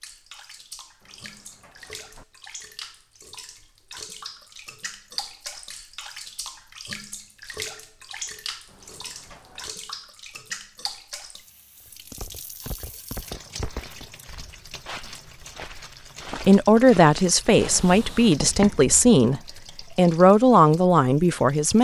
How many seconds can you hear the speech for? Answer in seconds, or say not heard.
5 s.